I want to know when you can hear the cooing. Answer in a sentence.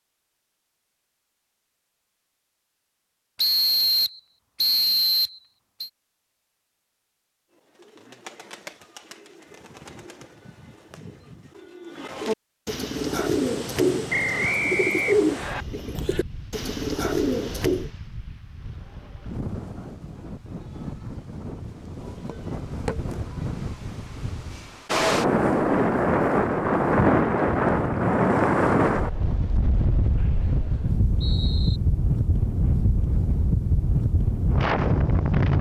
The cooing can be heard from 7.5 to 17.9 s.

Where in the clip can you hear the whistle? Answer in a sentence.
You can hear the whistle from 3.4 to 5.9 s, from 14.1 to 15.7 s and from 30.1 to 31.8 s.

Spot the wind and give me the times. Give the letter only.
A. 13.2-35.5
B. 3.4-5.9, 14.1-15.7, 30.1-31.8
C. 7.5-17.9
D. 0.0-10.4
A.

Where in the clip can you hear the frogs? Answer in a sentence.
You can't hear the frogs here.